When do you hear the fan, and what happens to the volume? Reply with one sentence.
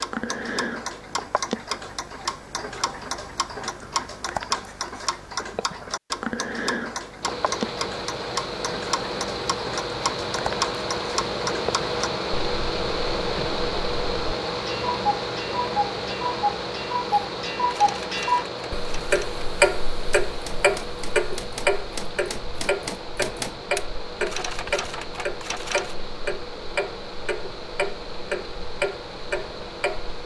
The fan can be heard from 7.2 to 30.2 s, getting quieter.